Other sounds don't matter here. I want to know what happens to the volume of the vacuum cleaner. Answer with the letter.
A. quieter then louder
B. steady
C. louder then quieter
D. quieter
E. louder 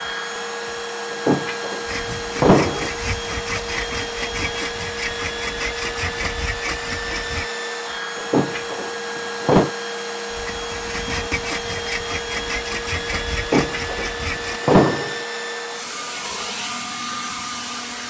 B.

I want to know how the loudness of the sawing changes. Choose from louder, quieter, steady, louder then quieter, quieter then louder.
steady.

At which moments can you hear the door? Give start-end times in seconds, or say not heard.
1.1-2.9, 8.2-9.7, 13.3-15.2.